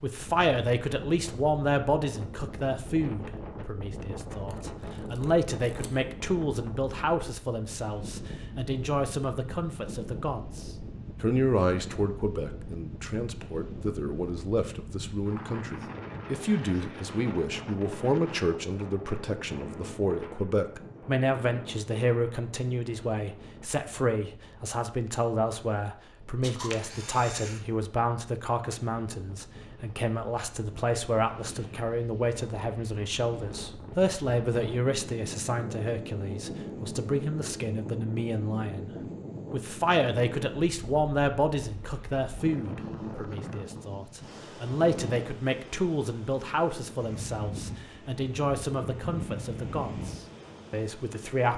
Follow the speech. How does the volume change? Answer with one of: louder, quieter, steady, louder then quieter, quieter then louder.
steady.